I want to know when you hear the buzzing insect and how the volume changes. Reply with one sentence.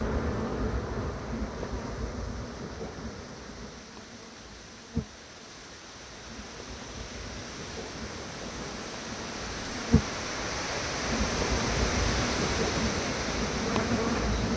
The buzzing insect can be heard from 0.0 to 14.5 s, getting quieter then louder.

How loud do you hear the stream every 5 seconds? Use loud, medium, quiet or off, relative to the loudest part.
quiet, medium, loud.